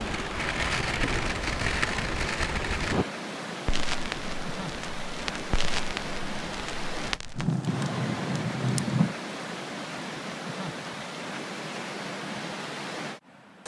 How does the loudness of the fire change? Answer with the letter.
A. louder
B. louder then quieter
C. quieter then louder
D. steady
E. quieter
C.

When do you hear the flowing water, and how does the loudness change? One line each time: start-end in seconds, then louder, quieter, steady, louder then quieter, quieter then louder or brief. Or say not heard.
0.0-13.6 steady.